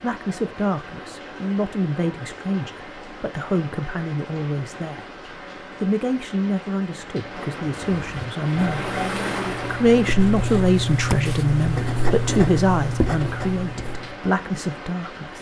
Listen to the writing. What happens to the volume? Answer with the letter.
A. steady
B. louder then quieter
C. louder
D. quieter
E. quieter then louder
C.